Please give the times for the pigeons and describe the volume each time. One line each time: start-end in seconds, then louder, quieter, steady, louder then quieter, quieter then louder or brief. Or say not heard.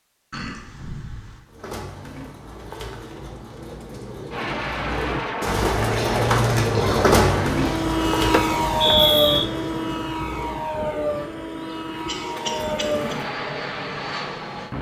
1.4-13.3 louder then quieter.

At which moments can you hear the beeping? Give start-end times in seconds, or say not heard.
8.3-9.4.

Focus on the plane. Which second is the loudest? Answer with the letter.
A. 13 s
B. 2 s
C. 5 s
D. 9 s
D.